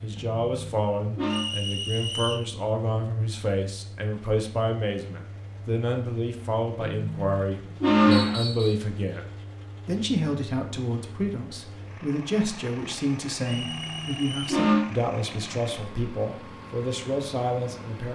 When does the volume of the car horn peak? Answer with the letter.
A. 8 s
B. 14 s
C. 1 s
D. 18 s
A.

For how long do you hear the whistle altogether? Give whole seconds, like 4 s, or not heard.
3 s.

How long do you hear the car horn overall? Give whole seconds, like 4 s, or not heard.
4 s.